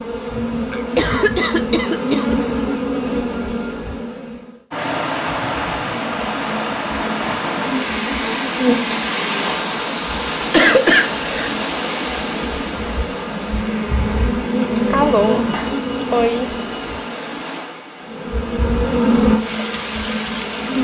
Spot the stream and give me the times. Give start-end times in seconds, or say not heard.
4.7-20.7.